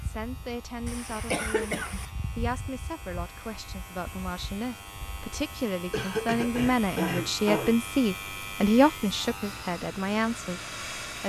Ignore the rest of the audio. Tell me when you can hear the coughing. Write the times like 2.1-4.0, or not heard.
0.8-2.0, 5.9-7.8.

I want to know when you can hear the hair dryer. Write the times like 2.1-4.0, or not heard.
9.4-11.2.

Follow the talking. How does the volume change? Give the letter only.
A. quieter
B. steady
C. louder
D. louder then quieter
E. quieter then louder
C.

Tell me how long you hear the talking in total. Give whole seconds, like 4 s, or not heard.
11 s.